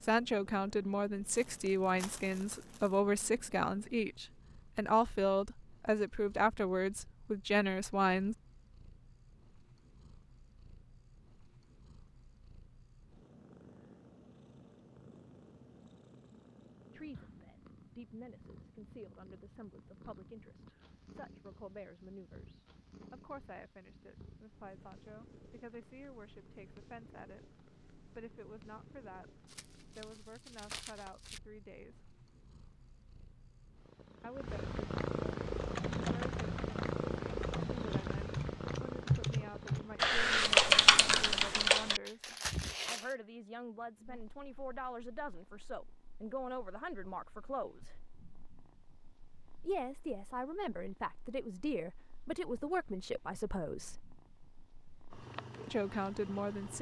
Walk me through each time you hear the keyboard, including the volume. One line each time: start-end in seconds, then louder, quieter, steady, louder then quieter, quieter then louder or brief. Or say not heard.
35.4-42.0 louder.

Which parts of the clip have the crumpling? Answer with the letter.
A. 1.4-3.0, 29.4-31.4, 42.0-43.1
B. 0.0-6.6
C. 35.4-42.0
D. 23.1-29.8
A.